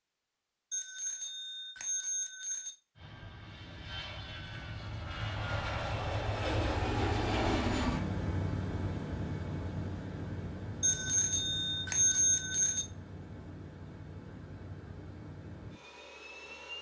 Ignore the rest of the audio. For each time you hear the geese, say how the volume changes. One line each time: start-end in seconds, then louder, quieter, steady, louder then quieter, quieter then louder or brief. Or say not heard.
not heard.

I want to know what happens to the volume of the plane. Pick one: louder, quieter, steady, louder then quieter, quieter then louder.
louder then quieter.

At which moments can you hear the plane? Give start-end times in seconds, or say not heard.
3.0-16.7.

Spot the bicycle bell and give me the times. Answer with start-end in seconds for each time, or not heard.
0.7-2.8, 10.8-12.8.